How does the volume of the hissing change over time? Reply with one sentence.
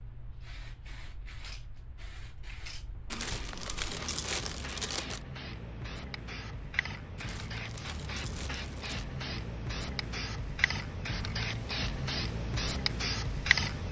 The volume of the hissing goes up.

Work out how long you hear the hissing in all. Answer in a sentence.
You can hear the hissing for 14 seconds altogether.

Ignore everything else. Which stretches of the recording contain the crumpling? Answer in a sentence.
The crumpling can be heard from 3.1 to 5.2 s and from 7.2 to 9.1 s.